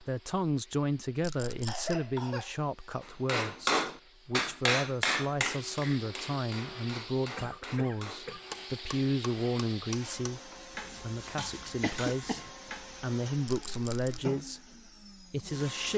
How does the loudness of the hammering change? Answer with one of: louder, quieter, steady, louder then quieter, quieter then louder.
quieter.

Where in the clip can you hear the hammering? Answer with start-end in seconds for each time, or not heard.
3.2-13.1.